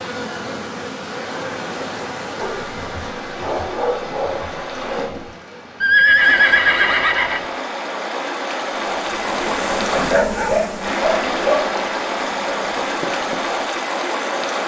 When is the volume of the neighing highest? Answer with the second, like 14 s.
6 s.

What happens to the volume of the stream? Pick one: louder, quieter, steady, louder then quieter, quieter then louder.
louder.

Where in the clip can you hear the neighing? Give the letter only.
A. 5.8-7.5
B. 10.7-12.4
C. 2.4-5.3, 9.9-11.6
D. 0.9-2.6
A.